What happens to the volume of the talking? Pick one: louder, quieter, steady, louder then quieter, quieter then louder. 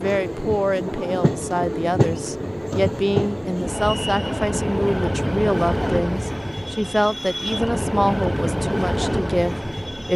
steady.